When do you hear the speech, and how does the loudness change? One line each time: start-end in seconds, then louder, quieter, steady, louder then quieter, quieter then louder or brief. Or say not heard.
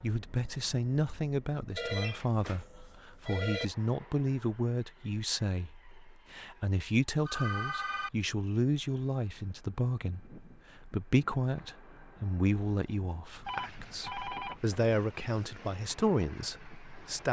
0.0-17.2 steady.